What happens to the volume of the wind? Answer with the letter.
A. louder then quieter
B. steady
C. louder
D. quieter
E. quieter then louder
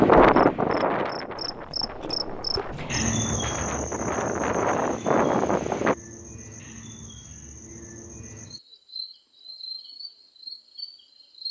E.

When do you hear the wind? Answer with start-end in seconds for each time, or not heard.
0.0-6.0.